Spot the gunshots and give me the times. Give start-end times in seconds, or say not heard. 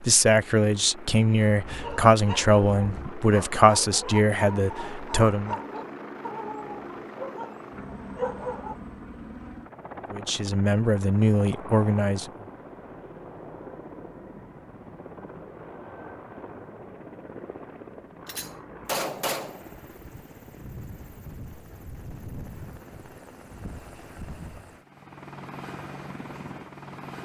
18.2-19.7.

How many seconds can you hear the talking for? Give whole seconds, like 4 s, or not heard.
8 s.